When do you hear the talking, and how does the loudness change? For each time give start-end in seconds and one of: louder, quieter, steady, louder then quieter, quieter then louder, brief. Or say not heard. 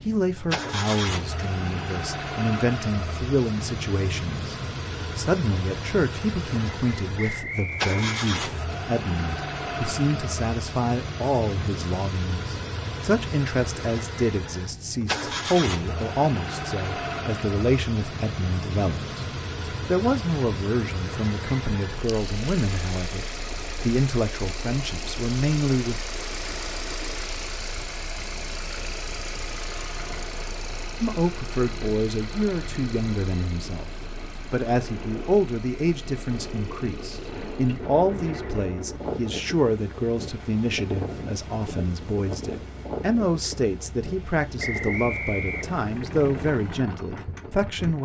0.0-26.0 steady
31.0-48.0 steady.